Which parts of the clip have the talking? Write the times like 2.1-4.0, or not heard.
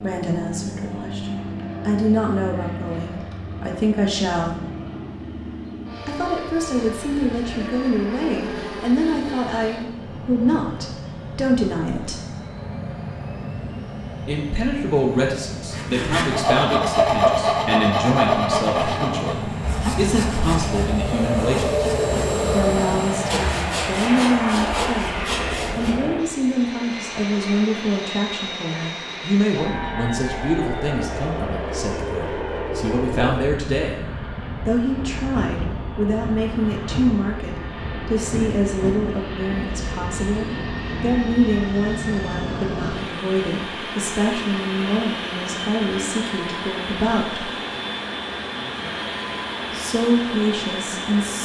0.0-4.6, 6.0-12.3, 14.2-21.9, 22.5-34.0, 34.6-47.5, 49.7-51.4.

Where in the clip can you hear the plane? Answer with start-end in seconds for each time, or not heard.
0.0-51.4.